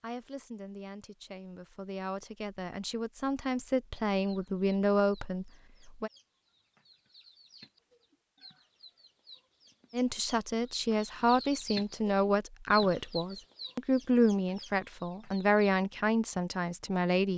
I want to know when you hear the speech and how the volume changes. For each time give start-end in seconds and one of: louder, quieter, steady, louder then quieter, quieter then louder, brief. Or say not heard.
0.0-6.1 louder
9.9-17.3 steady.